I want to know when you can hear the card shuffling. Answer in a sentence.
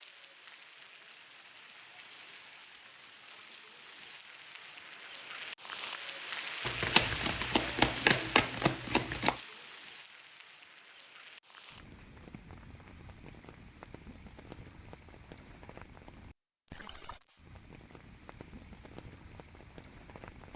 The card shuffling can be heard from 6.7 to 9.4 s.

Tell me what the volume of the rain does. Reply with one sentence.
The loudness of the rain goes up, then down.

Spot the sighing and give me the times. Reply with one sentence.
The sighing can't be heard in this clip.